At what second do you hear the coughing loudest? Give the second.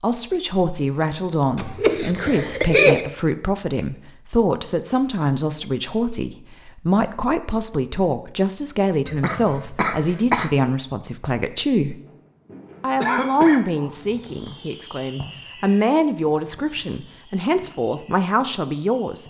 3 s.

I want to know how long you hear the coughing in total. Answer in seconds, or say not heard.
4 s.